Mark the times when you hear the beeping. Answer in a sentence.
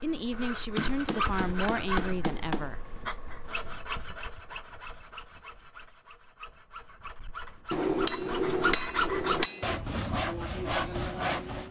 The beeping can't be heard in this clip.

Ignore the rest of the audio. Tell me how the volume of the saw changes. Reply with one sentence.
The loudness of the saw goes down, then up.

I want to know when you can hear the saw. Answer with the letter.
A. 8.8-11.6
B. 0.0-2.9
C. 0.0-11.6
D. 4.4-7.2
C.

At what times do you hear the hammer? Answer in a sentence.
You can hear the hammer from 0.8 to 2.7 s and from 7.7 to 9.8 s.